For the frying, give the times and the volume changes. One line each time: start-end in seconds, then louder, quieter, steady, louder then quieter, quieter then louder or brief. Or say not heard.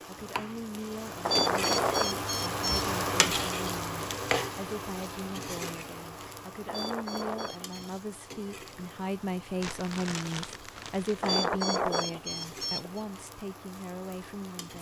0.0-14.7 quieter.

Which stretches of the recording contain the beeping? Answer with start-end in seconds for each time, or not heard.
1.2-2.9, 6.7-7.9, 11.2-13.0.